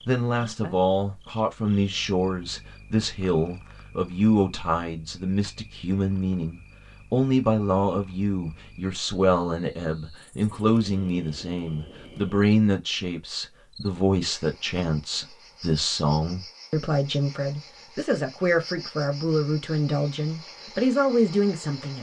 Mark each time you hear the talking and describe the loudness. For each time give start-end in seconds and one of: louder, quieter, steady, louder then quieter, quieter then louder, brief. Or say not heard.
0.1-21.9 steady.